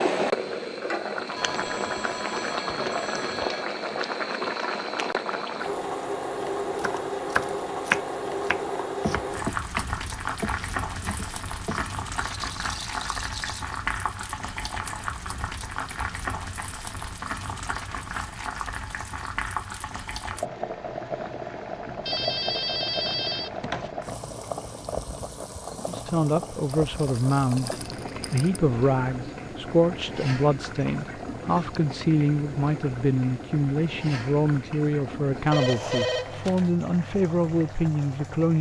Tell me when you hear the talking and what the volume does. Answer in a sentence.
You can hear the talking briefly from 25.9 to 27.7 s; and from 28.3 to 38.5 s, at a steady volume.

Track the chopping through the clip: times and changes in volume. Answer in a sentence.
The chopping can be heard from 6.8 to 11.9 s, getting quieter.